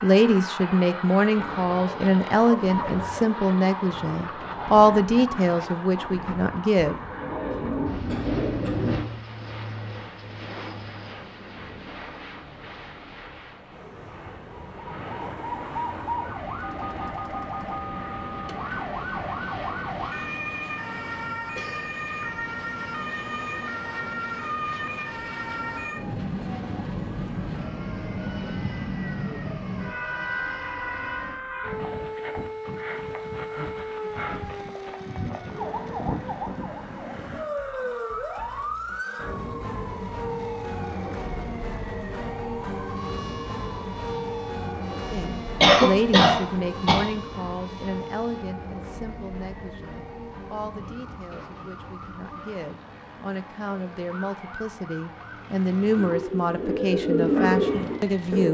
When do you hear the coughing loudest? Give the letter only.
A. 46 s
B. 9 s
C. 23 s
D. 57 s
A.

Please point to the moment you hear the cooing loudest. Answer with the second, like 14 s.
57 s.